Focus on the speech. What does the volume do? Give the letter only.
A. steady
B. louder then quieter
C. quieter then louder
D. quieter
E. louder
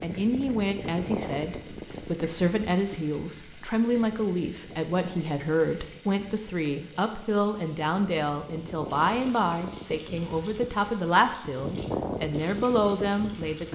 A.